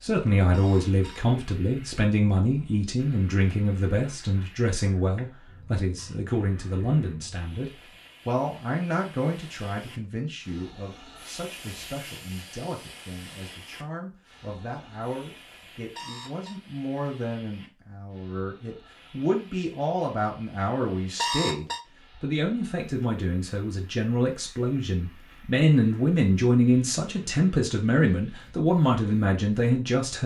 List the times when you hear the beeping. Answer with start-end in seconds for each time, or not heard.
0.5-1.2, 15.9-16.6, 21.1-21.8.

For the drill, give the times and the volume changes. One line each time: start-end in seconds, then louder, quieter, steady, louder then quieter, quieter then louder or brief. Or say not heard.
not heard.